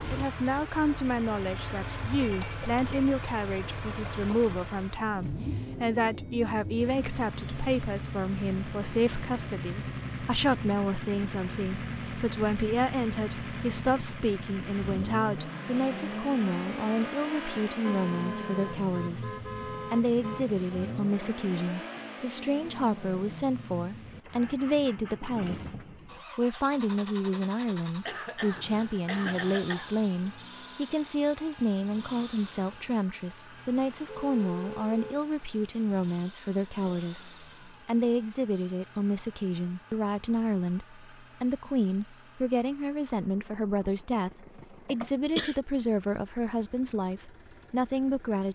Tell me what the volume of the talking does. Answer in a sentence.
The loudness of the talking stays about the same.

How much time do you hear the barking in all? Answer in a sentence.
The barking can't be heard in this clip.